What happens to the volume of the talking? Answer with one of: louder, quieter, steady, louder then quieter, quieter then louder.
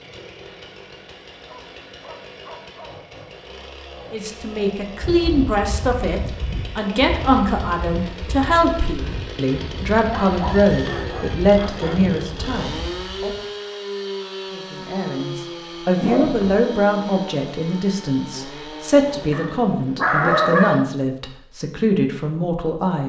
steady.